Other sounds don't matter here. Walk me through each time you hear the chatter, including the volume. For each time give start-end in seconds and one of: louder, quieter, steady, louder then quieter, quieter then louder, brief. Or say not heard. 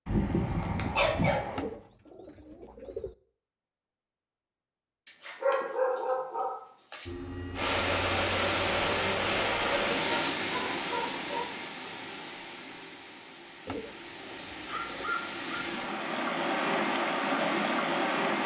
not heard.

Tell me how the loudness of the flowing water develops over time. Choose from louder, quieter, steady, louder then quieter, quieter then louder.
quieter then louder.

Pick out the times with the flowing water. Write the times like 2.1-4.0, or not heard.
7.5-18.4.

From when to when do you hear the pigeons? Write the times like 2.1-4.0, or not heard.
1.6-3.1, 13.7-15.2.